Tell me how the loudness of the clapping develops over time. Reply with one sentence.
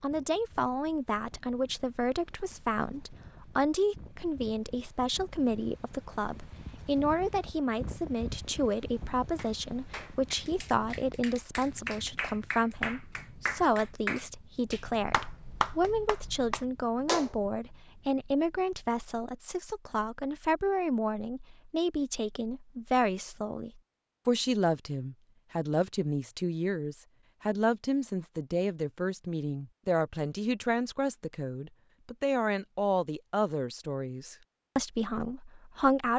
The loudness of the clapping goes up.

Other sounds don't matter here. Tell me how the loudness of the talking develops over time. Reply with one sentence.
The loudness of the talking stays about the same.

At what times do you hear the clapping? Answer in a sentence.
You can hear the clapping from 9.3 to 17.3 s.